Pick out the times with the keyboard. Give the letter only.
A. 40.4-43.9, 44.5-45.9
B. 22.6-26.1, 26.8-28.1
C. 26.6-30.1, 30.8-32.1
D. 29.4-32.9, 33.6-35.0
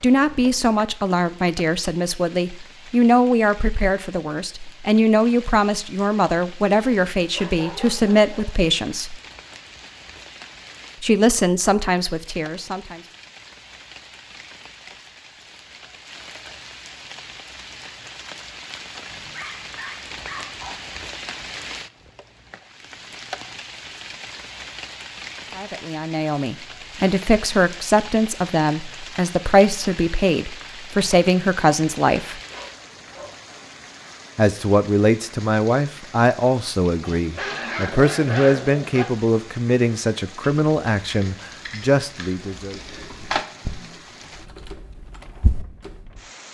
A.